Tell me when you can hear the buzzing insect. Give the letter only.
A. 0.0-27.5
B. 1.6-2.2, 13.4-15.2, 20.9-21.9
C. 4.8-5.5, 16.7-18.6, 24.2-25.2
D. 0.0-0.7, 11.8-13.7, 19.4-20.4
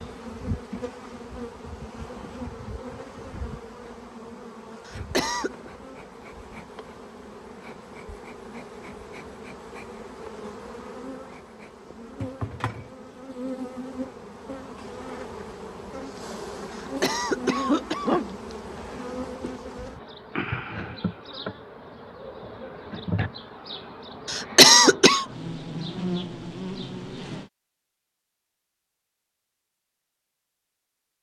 A.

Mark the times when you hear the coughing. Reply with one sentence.
The coughing can be heard from 4.8 to 5.5 s, from 16.7 to 18.6 s and from 24.2 to 25.2 s.